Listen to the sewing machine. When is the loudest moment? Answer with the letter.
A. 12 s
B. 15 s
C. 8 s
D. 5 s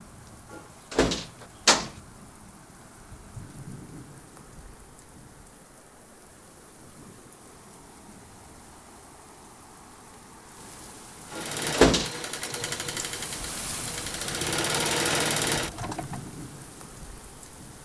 B.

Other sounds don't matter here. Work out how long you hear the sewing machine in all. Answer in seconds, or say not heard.
5 s.